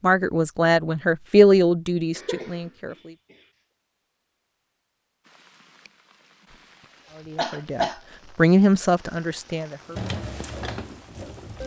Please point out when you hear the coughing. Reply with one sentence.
You can hear the coughing from 2.1 to 3.4 s and from 7.3 to 8.0 s.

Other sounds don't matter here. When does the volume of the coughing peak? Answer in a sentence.
The volume of the coughing peaks at 8 seconds.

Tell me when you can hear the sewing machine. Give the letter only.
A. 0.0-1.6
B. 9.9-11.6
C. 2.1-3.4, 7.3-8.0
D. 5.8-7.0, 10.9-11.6
B.